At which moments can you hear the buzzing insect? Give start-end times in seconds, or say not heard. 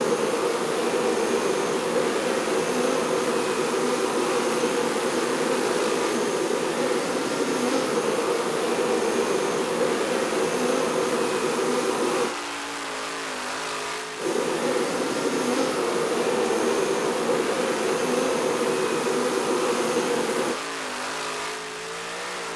0.0-12.3, 14.2-20.6.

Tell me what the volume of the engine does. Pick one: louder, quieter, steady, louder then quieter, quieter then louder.
steady.